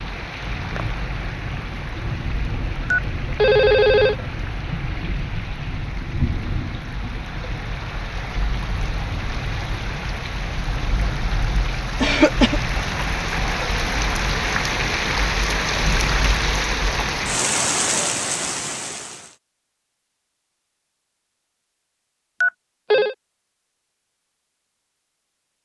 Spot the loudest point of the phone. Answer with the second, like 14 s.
4 s.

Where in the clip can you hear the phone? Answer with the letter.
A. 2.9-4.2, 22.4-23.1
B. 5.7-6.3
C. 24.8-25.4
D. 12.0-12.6
A.